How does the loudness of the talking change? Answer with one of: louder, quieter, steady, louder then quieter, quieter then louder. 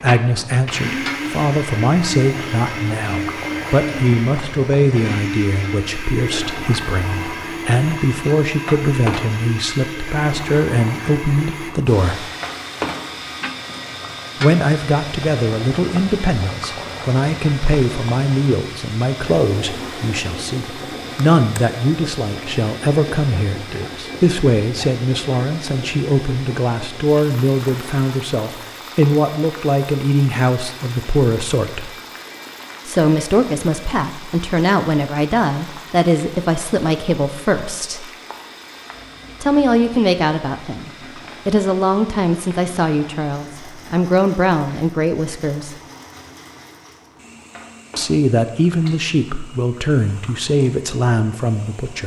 steady.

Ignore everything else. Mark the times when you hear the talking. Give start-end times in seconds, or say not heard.
0.0-12.2, 14.4-31.9, 32.9-38.0, 39.4-45.8, 48.0-52.0.